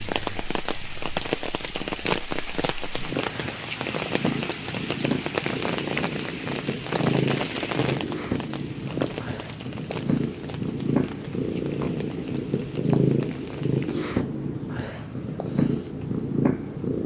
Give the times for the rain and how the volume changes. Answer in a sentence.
You can hear the rain from 0.0 to 14.1 s, getting quieter.